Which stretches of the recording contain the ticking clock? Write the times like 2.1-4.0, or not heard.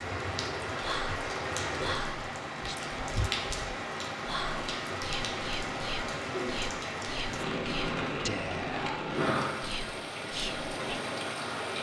not heard.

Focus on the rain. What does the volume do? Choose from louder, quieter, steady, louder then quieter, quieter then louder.
steady.